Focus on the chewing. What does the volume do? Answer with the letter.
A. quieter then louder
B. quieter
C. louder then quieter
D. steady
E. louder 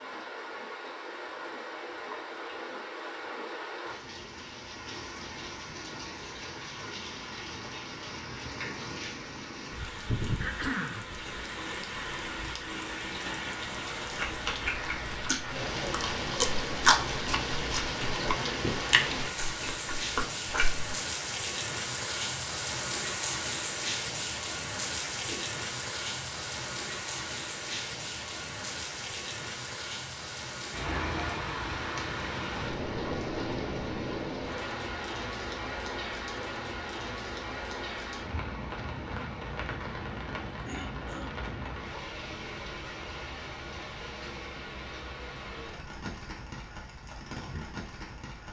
C.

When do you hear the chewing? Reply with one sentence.
The chewing can be heard from 14.1 to 20.9 s.